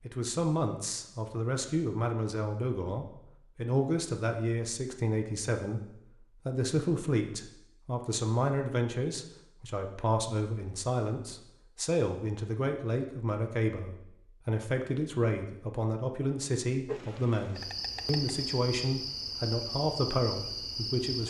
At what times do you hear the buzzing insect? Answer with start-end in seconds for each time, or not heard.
16.9-21.2.